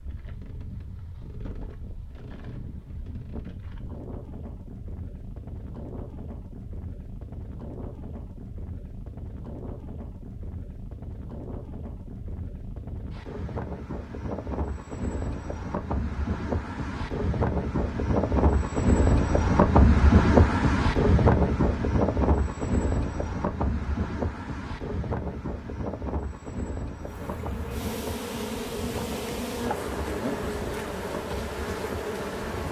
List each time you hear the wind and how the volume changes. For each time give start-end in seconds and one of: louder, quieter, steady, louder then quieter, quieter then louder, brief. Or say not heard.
0.0-32.6 louder then quieter.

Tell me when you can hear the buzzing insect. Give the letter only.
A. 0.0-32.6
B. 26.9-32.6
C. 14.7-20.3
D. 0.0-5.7
B.